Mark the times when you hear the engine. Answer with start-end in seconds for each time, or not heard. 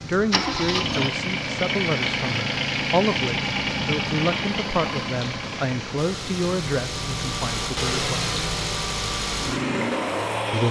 0.1-10.6.